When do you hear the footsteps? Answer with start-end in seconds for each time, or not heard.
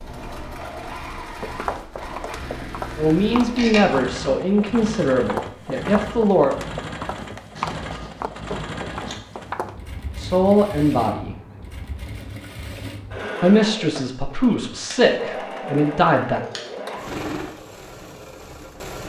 1.2-9.8.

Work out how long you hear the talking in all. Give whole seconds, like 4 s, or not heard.
8 s.